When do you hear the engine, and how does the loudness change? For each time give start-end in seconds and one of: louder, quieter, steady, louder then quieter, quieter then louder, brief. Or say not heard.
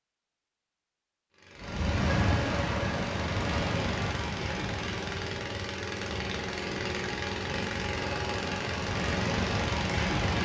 1.3-10.4 louder.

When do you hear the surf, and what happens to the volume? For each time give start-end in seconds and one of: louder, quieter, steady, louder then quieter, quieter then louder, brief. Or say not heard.
1.6-10.4 quieter then louder.